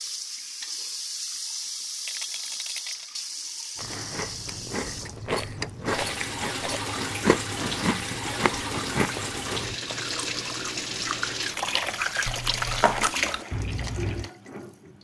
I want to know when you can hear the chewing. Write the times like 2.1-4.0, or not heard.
3.8-14.3.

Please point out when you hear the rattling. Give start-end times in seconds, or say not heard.
2.0-3.1, 5.2-6.9, 12.2-13.2.